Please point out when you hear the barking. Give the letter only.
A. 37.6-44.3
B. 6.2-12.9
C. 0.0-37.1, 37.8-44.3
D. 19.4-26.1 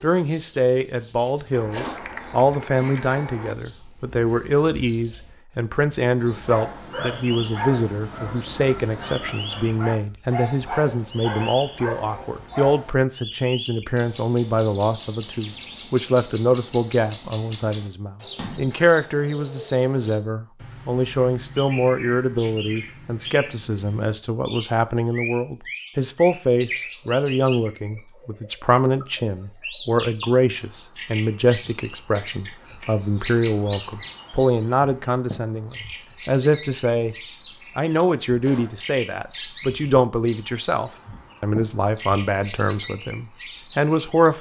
B.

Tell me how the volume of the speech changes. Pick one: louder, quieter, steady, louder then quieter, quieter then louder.
steady.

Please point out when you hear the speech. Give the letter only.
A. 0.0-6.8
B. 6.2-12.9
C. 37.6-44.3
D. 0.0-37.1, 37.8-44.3
D.